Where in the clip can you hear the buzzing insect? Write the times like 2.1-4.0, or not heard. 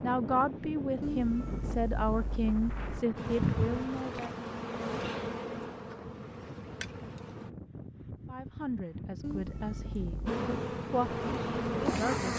3.1-7.5, 10.2-12.3.